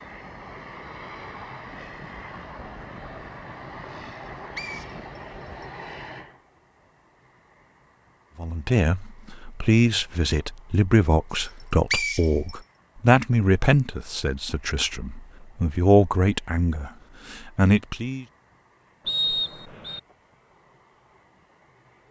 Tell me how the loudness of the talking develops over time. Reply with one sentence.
The loudness of the talking stays about the same.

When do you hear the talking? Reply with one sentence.
You can hear the talking from 8.3 to 18.2 s.